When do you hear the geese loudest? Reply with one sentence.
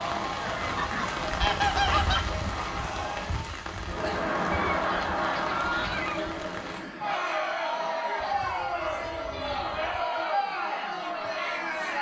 The loudest moment of the geese is at 2 seconds.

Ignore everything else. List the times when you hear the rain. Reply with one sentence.
You can hear the rain from 0.0 to 6.8 s.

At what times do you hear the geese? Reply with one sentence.
The geese can be heard from 0.4 to 2.4 s, from 4.5 to 6.3 s and from 8.2 to 10.1 s.